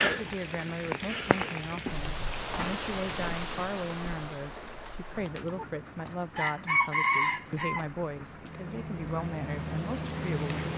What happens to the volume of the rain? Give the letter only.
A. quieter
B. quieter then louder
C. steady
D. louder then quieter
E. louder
B.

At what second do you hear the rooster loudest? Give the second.
7 s.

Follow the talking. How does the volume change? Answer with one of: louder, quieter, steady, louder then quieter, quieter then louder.
steady.